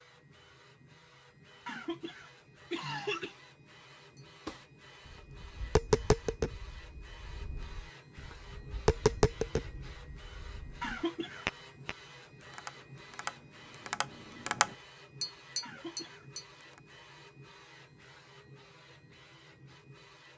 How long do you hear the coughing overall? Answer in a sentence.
You can hear the coughing for 3 seconds altogether.